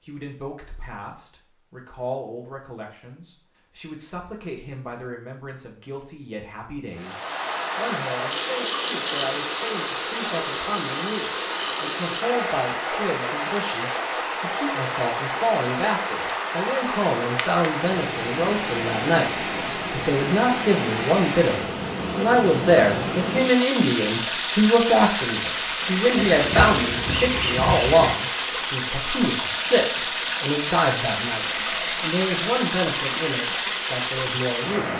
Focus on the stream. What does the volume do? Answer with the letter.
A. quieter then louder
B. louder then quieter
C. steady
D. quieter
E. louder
C.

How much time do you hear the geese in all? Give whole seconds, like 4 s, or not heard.
2 s.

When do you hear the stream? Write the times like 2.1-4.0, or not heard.
7.0-34.9.